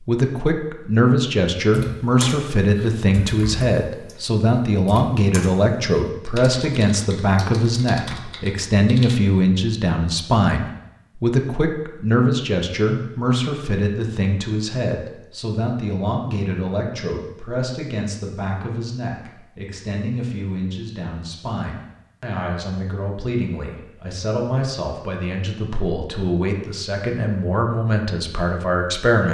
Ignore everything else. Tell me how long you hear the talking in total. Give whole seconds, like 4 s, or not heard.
29 s.